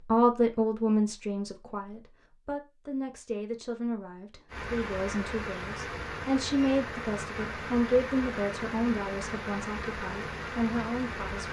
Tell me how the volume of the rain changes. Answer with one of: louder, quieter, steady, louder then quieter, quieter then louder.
steady.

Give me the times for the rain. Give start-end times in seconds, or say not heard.
4.5-11.4.